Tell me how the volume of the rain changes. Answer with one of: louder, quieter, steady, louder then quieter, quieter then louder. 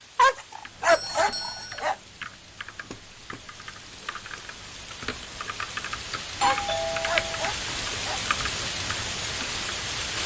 louder.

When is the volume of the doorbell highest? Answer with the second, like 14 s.
7 s.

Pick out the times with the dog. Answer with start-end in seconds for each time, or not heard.
0.1-1.9, 6.4-8.2.